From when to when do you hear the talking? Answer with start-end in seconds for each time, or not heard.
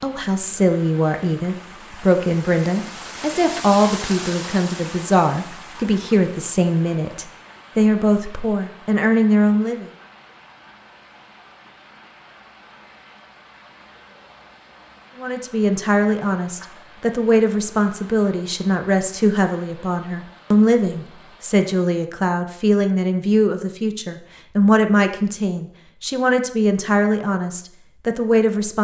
0.0-9.8, 15.2-28.7.